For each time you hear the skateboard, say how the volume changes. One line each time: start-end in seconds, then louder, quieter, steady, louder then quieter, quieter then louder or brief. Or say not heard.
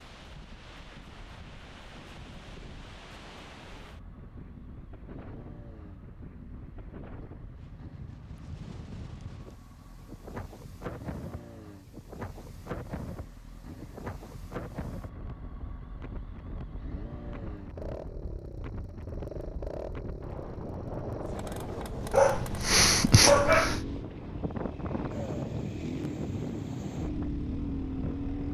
not heard.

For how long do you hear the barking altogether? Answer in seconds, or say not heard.
2 s.